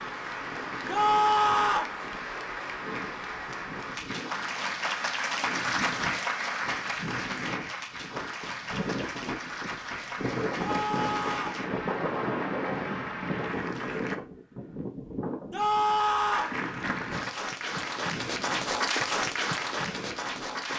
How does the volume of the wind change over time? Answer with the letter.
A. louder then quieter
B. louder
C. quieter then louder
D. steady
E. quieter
A.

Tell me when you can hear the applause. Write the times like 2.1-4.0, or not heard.
0.0-14.2, 16.3-20.7.